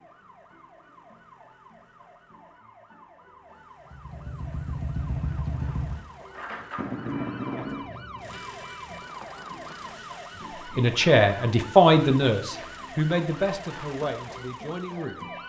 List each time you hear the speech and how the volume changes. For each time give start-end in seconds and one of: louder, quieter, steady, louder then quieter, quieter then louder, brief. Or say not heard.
10.7-15.2 quieter.